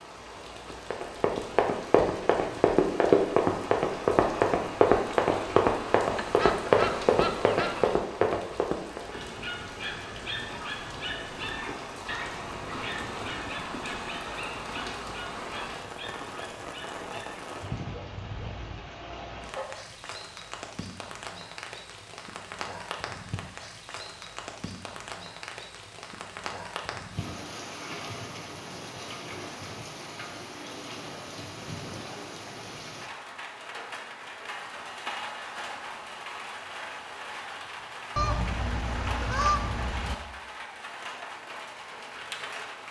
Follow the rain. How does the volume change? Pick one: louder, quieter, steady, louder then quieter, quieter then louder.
steady.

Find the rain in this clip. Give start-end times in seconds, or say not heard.
0.0-42.8.